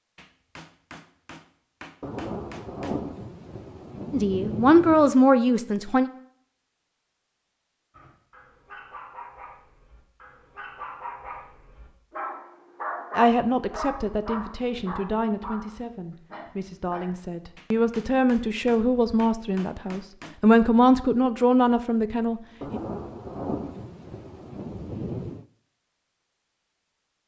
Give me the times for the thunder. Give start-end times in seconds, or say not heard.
2.0-5.2, 22.6-25.4.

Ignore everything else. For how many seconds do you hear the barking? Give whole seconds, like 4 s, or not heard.
9 s.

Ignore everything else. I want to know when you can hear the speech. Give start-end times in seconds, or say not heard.
4.1-6.1, 13.2-22.8.